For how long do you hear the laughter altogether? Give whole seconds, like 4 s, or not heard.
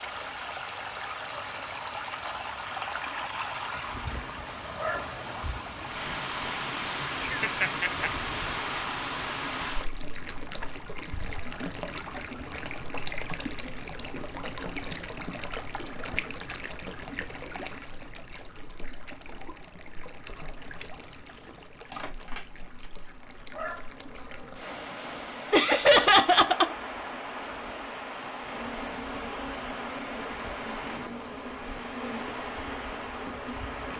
2 s.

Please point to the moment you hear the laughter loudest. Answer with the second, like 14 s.
26 s.